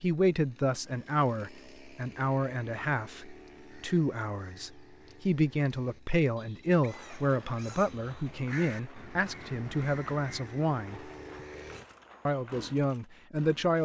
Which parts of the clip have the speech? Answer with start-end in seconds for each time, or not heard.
0.0-11.1, 12.2-13.8.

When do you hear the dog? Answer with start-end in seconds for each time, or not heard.
not heard.